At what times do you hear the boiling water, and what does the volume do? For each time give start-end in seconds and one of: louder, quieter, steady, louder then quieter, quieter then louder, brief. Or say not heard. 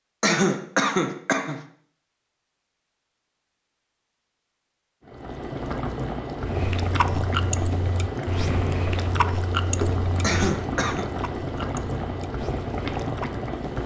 5.0-13.8 steady.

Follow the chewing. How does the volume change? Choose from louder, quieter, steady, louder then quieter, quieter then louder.
quieter.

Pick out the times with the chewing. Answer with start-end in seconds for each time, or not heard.
6.3-13.4.